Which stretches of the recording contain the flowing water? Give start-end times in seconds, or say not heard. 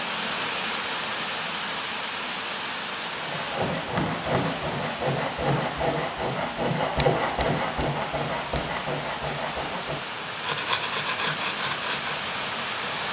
0.0-13.0.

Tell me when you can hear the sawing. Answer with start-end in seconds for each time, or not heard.
3.1-12.2.